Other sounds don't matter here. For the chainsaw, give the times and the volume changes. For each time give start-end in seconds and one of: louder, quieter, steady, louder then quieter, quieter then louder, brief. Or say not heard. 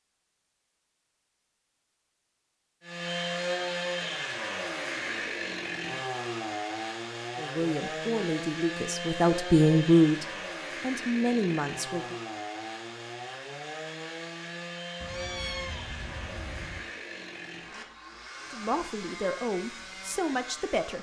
2.8-20.9 quieter.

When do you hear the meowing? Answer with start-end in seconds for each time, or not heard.
15.0-16.9.